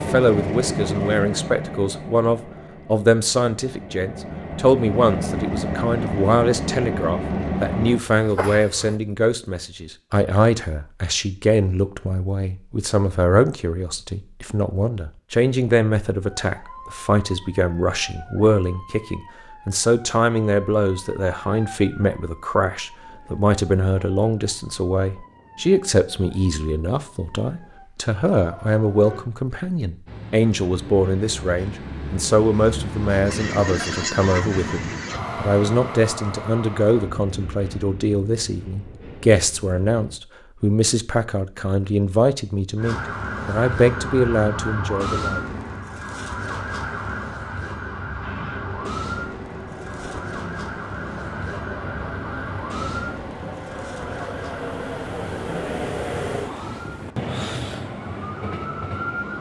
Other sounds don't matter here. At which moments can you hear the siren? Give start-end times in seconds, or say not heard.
16.4-29.2, 42.8-59.3.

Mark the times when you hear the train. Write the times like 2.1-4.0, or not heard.
0.0-9.0, 30.1-40.2, 48.2-59.3.